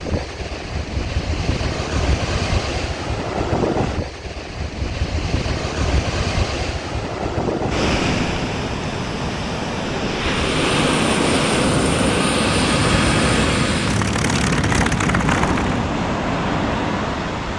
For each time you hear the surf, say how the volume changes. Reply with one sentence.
You can hear the surf from 0.0 to 17.5 s, at a steady volume.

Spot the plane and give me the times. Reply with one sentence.
The plane can be heard from 10.2 to 15.9 s.